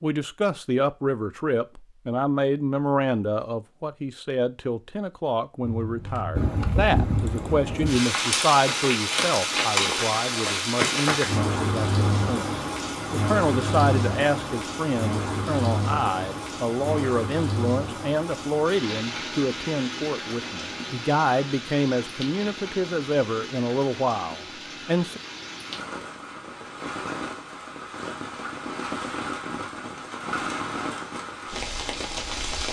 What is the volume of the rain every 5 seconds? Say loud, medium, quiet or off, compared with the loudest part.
off, loud, loud, medium, medium, medium, medium.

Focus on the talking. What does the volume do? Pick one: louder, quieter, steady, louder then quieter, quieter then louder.
steady.